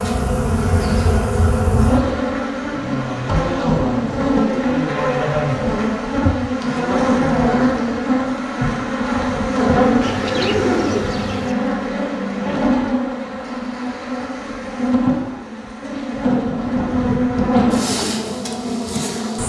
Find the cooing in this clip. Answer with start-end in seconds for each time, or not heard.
10.0-11.6.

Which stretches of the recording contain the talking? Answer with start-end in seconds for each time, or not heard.
not heard.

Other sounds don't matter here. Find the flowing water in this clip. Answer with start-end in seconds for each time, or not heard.
not heard.